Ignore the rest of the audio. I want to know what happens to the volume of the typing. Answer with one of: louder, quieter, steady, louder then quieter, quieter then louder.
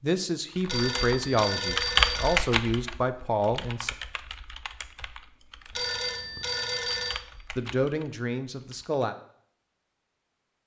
quieter then louder.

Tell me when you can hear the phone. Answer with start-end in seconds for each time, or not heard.
0.7-2.4, 5.8-7.2.